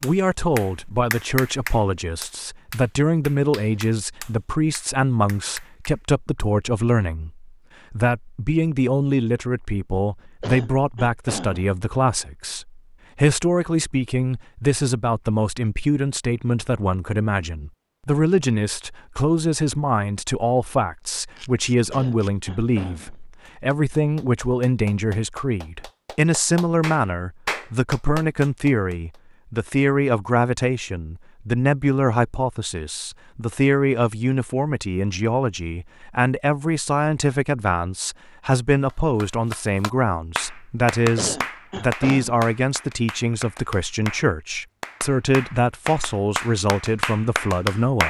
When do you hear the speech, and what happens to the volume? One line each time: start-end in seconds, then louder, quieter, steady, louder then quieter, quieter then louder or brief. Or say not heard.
0.0-48.0 steady.